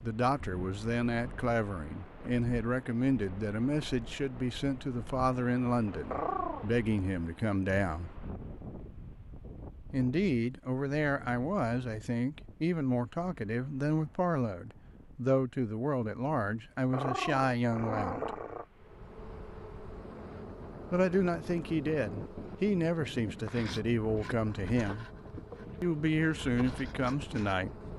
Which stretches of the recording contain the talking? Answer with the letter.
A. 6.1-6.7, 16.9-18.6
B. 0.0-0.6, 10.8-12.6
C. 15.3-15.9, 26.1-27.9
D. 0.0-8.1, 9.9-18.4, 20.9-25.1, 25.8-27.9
D.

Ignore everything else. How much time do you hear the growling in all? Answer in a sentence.
The growling can be heard for 2 seconds in total.